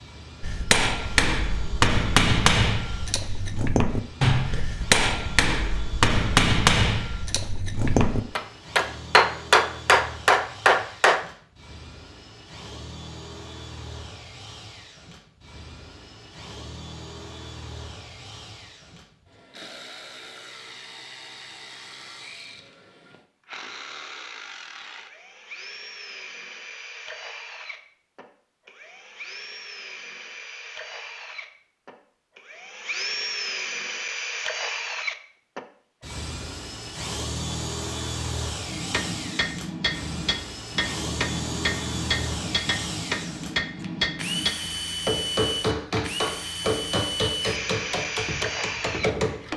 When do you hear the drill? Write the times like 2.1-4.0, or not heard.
0.0-49.5.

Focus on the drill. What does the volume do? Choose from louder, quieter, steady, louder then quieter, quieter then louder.
louder.